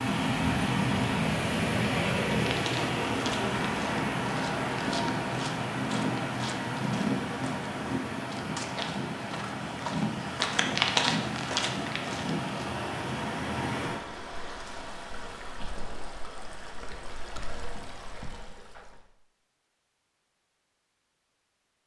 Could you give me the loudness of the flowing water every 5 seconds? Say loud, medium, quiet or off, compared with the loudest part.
loud, medium, medium, quiet, off.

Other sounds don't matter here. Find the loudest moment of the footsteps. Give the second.
11 s.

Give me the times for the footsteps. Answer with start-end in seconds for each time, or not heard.
2.5-12.7.